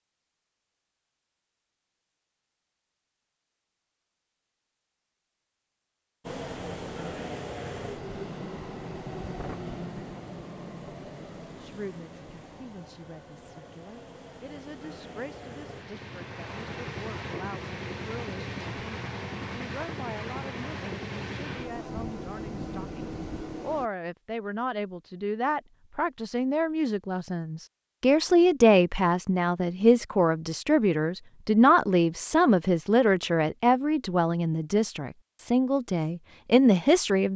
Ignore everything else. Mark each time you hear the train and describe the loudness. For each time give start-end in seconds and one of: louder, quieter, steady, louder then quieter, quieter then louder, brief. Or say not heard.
6.2-23.9 quieter then louder.